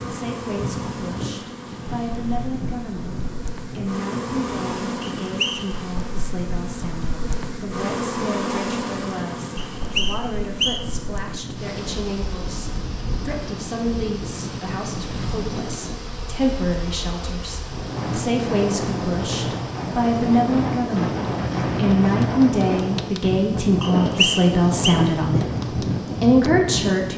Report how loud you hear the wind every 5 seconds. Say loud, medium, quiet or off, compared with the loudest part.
medium, quiet, medium, medium, loud, loud.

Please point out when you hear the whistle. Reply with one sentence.
The whistle can be heard from 5.2 to 5.7 s, from 9.6 to 10.8 s and from 23.8 to 24.9 s.